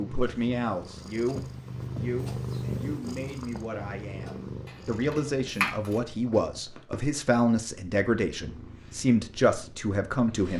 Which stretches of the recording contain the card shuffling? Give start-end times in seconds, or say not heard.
4.7-6.0.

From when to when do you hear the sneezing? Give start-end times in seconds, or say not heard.
not heard.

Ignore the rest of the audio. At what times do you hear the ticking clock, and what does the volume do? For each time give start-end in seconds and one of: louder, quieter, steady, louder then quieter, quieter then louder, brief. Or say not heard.
not heard.